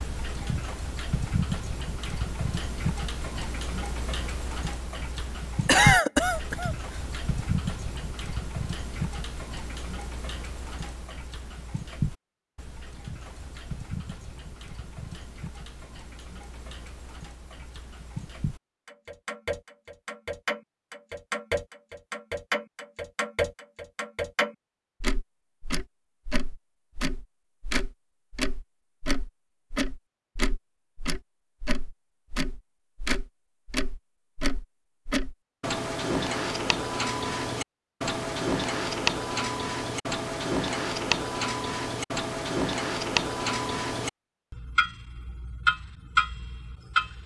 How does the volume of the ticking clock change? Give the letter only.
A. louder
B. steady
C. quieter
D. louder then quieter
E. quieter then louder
E.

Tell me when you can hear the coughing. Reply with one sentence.
The coughing can be heard from 5.7 to 6.8 s.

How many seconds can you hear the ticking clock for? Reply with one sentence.
The ticking clock can be heard for 47 seconds in total.